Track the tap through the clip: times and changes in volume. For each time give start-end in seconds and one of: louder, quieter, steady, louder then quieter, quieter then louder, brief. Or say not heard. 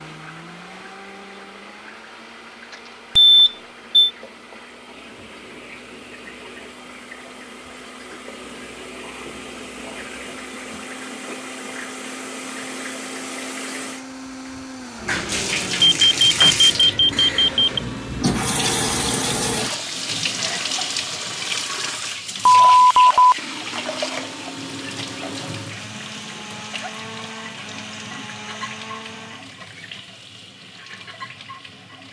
0.0-32.0 louder then quieter.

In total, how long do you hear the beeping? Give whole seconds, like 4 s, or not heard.
4 s.